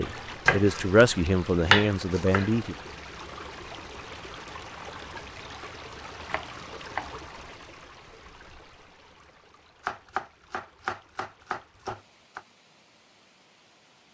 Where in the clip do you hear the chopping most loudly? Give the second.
2 s.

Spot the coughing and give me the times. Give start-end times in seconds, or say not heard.
not heard.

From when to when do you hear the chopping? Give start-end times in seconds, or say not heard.
0.5-2.5, 6.2-7.2, 9.8-12.4.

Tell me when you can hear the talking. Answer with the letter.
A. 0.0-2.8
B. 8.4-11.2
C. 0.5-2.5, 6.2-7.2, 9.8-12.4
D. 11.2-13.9
A.